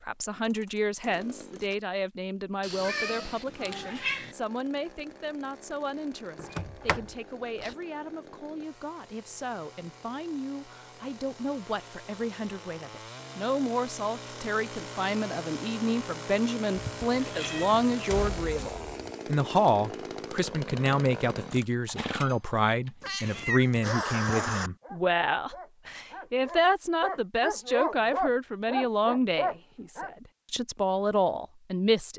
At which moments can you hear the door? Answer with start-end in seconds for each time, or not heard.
6.4-7.0, 18.1-19.1.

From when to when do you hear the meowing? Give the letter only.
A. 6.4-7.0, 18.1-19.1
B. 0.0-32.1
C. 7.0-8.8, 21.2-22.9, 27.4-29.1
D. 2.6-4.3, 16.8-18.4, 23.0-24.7
D.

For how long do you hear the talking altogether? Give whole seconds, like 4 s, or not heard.
32 s.